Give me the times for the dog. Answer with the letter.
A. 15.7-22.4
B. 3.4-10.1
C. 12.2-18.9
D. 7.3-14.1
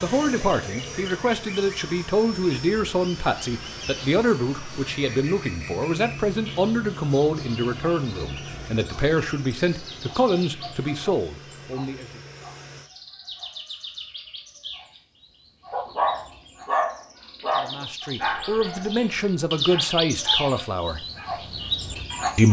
A.